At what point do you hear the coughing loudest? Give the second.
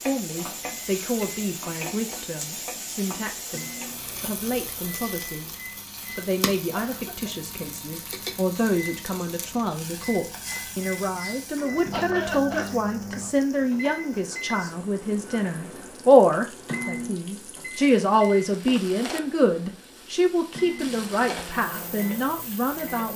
12 s.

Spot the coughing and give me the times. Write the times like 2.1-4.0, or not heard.
6.8-7.3, 11.9-12.7.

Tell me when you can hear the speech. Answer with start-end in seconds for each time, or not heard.
0.0-23.1.